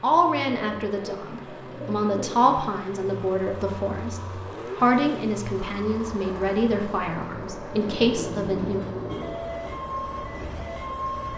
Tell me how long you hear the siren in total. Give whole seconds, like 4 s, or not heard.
2 s.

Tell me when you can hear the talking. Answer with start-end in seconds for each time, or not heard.
0.0-8.8.